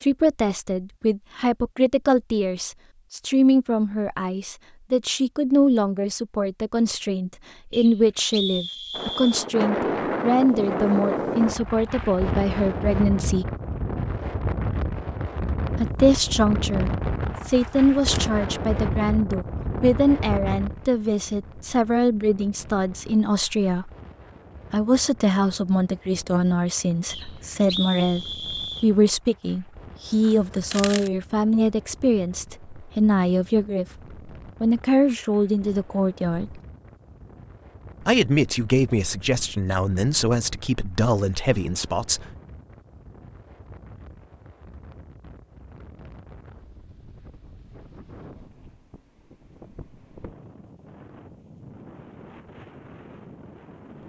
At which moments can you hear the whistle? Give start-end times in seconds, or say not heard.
7.7-9.4, 27.1-28.9.